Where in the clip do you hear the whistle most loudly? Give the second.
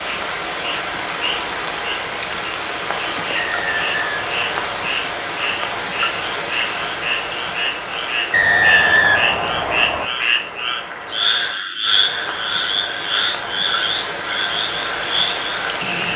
9 s.